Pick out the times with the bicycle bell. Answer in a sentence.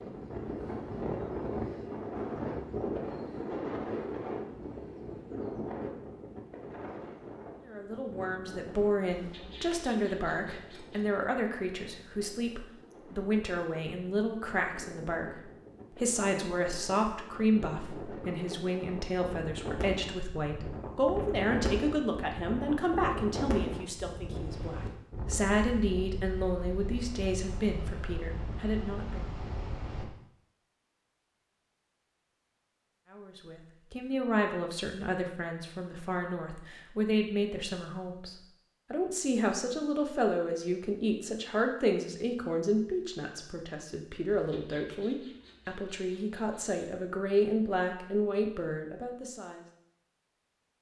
The bicycle bell can't be heard in this clip.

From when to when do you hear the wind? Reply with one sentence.
The wind can be heard from 0.0 to 30.1 s.